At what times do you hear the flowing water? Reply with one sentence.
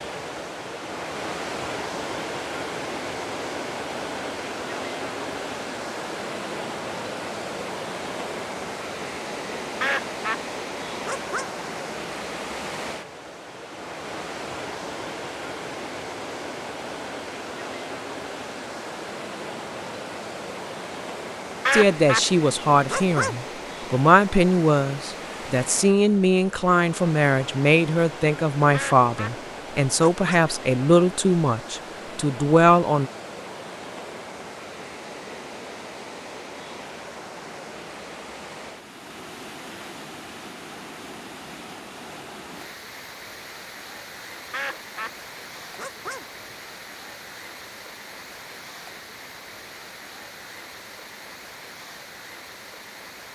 You can hear the flowing water from 0.0 to 53.3 s.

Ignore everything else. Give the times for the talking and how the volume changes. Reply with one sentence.
The talking can be heard from 21.7 to 33.1 s, at a steady volume.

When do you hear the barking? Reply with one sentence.
The barking can't be heard in this clip.